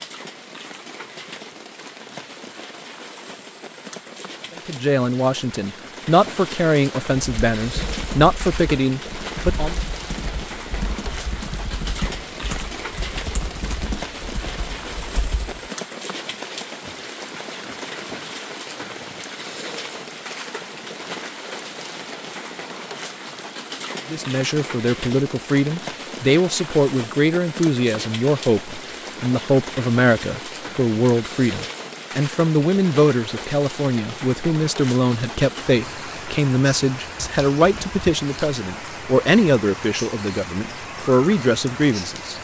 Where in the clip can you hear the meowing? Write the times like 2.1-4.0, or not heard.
not heard.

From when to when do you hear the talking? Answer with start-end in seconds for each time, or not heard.
4.7-9.8, 24.1-42.3.